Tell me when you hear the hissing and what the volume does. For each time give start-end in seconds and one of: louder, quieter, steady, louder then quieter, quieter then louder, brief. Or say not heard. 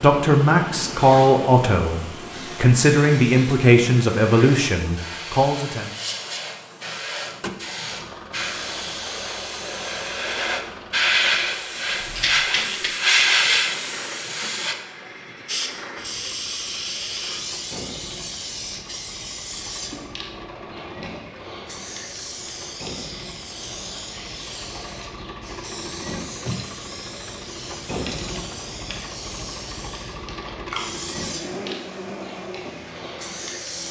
0.0-33.8 louder then quieter.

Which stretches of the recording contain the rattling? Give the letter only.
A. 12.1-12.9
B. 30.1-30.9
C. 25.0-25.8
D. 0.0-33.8
A.